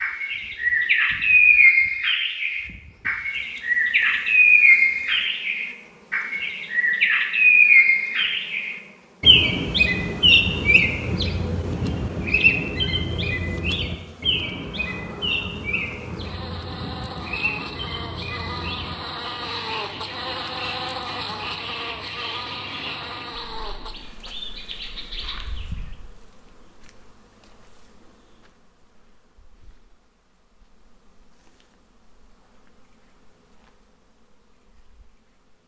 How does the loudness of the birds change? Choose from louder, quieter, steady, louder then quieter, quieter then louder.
quieter.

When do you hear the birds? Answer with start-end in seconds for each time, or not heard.
0.0-25.9.